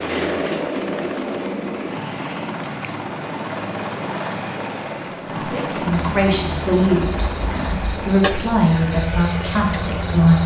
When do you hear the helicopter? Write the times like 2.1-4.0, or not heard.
0.0-10.4.